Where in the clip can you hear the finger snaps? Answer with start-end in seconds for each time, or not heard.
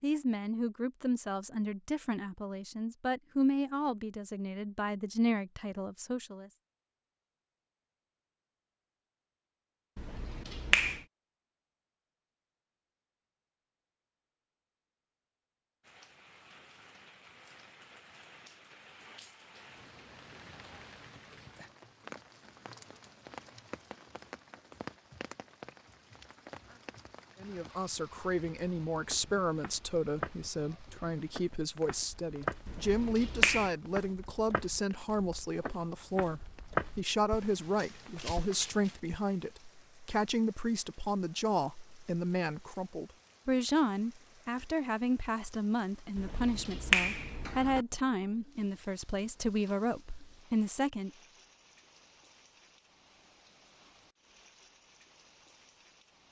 9.9-11.0, 32.6-33.7, 46.1-47.9.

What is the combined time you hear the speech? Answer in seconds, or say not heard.
30 s.